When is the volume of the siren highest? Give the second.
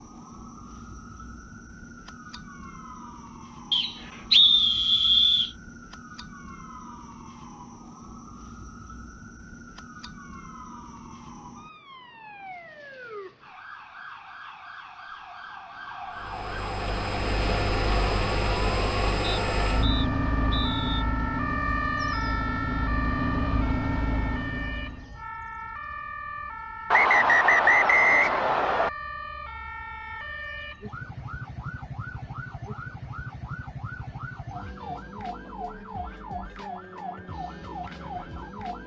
22 s.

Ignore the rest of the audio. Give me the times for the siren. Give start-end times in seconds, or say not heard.
0.0-38.8.